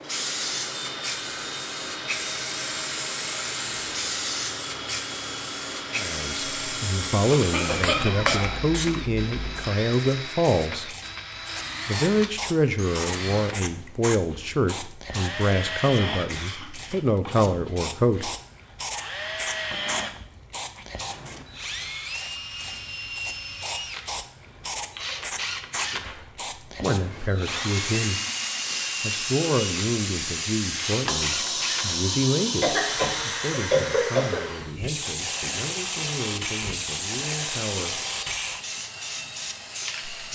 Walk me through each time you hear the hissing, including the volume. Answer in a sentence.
You can hear the hissing from 0.0 to 40.3 s, getting quieter then louder.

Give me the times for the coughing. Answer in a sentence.
You can hear the coughing from 7.3 to 8.6 s, from 16.3 to 17.0 s and from 32.6 to 34.5 s.